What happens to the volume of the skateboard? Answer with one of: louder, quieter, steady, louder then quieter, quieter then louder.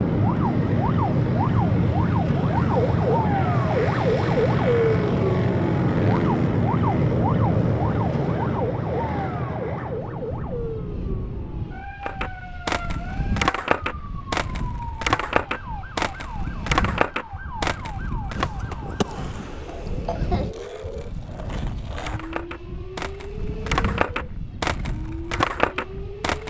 quieter then louder.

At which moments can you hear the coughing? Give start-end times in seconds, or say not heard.
19.6-20.6.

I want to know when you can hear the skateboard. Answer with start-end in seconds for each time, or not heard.
12.0-26.4.